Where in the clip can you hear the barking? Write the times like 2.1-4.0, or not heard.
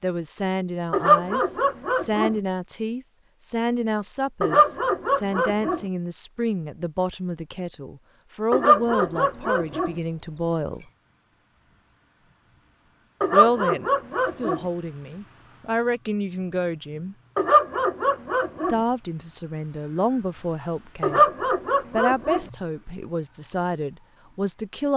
0.9-2.4, 4.4-5.8, 8.5-9.9, 13.2-14.7, 17.4-18.8, 21.0-22.4.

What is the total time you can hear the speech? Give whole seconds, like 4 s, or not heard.
20 s.